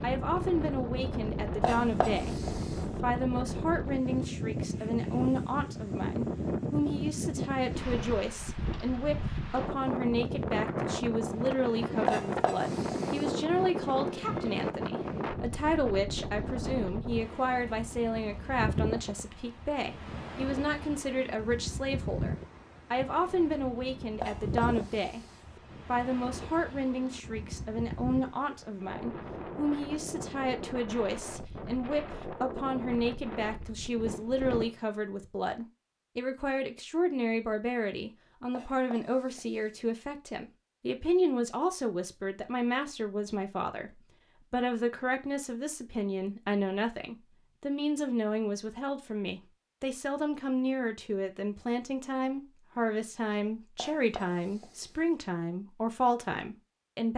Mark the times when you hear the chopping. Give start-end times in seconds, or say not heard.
1.6-3.0, 12.1-13.3, 24.2-25.6, 38.5-40.0, 53.8-55.2.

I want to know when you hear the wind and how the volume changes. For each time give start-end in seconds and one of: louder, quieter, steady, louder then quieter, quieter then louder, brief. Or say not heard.
0.0-34.8 quieter.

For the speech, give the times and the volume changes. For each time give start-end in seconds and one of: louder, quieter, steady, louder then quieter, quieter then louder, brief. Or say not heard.
0.0-2.4 brief
3.0-25.2 steady
25.9-57.1 steady.